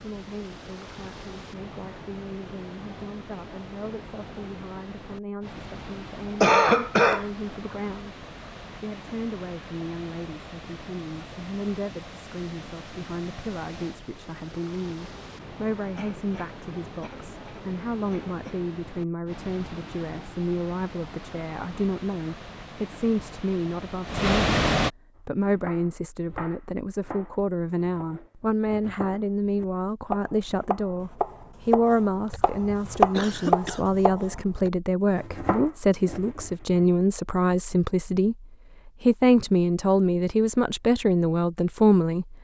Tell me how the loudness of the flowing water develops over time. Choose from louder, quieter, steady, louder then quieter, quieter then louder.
louder.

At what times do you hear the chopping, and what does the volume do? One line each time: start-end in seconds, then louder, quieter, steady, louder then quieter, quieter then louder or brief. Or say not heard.
25.4-36.9 louder then quieter.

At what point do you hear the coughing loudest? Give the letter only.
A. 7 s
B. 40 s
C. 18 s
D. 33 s
A.